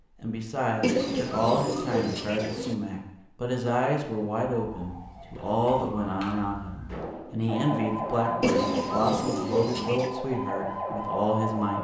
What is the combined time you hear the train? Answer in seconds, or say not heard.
not heard.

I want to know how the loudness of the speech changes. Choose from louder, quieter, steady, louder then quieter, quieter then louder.
steady.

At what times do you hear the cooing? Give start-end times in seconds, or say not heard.
0.8-2.8, 8.4-10.2.